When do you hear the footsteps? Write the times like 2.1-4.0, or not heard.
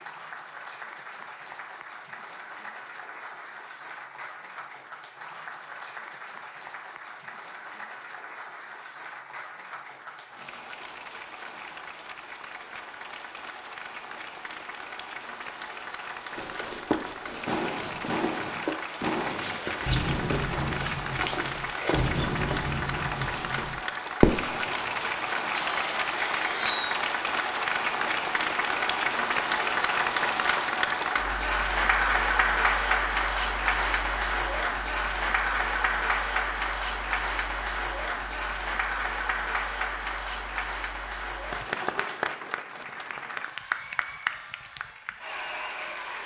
16.3-23.7.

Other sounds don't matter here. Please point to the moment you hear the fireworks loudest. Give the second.
24 s.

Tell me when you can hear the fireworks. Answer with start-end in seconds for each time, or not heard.
17.4-24.7, 25.6-26.9.